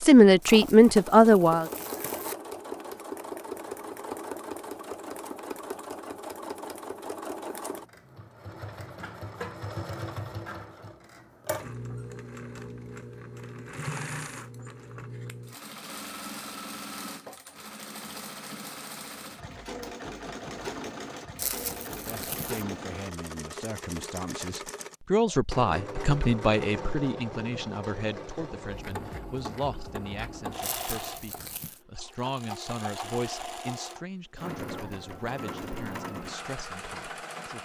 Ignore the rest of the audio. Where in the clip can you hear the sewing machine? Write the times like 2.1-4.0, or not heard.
0.0-37.5.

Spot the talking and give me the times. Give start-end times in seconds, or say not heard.
0.0-1.6, 22.1-37.5.